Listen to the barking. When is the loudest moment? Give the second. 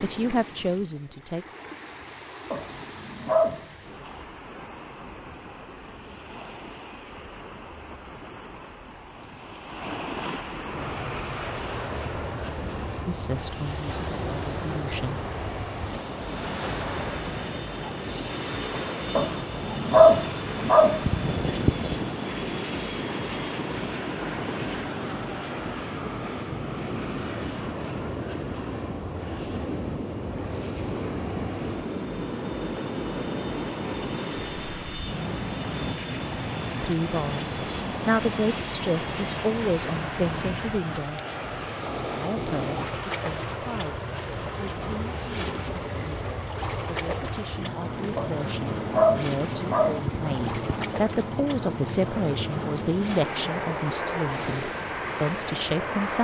20 s.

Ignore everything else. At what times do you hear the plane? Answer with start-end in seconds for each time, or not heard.
10.7-56.1.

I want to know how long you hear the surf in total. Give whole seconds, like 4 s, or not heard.
56 s.